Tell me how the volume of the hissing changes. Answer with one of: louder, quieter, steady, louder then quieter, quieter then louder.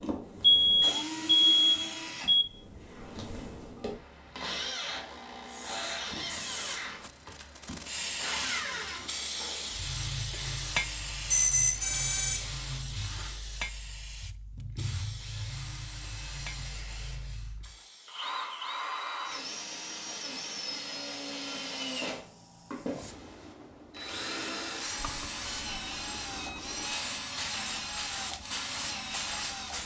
quieter then louder.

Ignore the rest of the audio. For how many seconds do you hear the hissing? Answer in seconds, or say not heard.
24 s.